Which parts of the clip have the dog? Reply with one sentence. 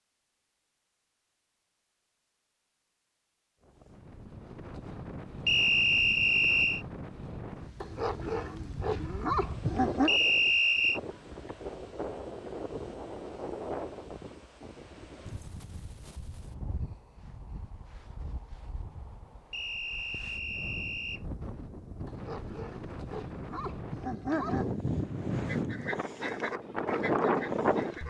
You can hear the dog from 7.8 to 10.1 s and from 22.1 to 24.8 s.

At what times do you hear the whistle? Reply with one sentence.
You can hear the whistle from 5.5 to 6.8 s, from 10.1 to 11.0 s and from 19.5 to 21.2 s.